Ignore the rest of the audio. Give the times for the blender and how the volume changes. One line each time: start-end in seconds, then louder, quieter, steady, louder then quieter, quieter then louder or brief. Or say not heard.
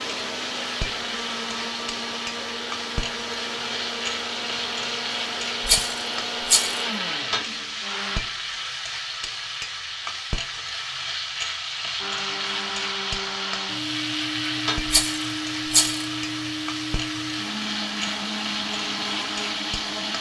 0.0-8.2 steady
11.9-20.1 steady.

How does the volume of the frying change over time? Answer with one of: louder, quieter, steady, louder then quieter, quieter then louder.
steady.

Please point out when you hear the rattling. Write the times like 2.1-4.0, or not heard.
5.7-6.8, 14.8-16.1.